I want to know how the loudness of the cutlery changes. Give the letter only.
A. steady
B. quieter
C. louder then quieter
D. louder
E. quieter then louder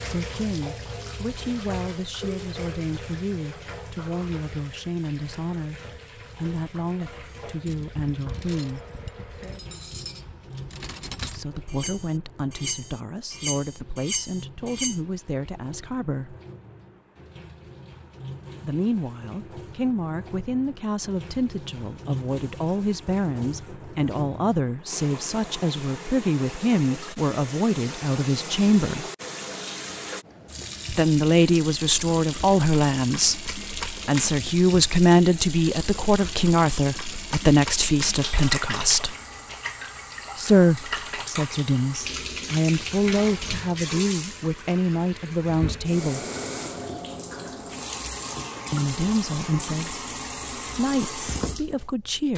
D.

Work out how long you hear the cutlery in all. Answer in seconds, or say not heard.
8 s.